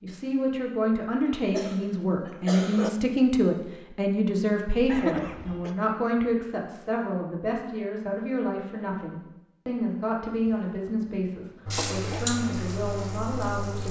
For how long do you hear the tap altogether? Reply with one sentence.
The tap can be heard for 2 seconds in total.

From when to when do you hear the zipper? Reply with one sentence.
The zipper can't be heard in this clip.